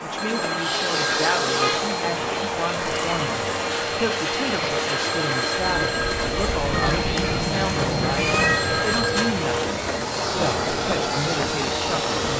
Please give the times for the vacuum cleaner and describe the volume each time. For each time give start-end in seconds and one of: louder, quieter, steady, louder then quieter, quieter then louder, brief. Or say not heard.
0.2-12.3 steady.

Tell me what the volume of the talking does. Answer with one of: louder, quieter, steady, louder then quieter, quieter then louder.
steady.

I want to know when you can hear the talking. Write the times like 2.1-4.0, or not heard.
0.0-12.3.